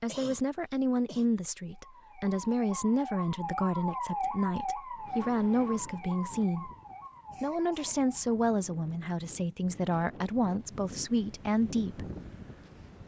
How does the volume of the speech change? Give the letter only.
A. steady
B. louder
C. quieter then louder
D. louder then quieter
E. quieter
A.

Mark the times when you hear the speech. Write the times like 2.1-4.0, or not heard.
0.0-6.7, 7.4-12.1.